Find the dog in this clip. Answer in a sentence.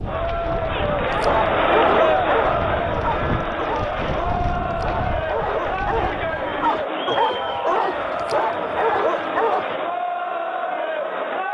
The dog can be heard from 1.1 to 9.8 s.